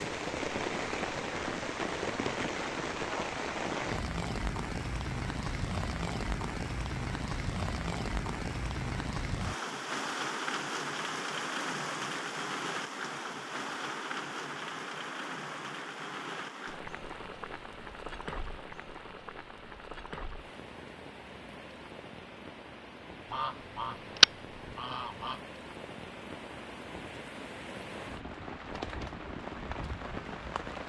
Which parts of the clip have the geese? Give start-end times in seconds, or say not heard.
23.3-25.4.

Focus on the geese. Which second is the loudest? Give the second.
24 s.